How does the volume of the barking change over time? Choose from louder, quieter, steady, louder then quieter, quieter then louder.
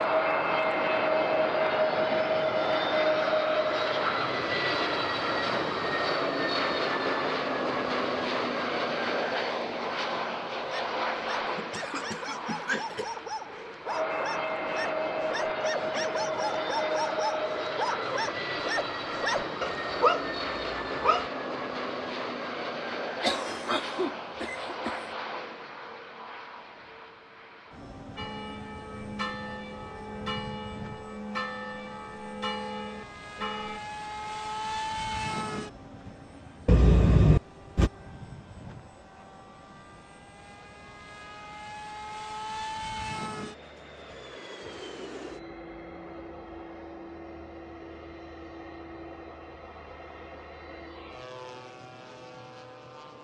louder.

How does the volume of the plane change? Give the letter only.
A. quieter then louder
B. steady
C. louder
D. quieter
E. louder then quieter
D.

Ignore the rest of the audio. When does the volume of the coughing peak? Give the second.
37 s.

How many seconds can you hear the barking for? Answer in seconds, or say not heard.
11 s.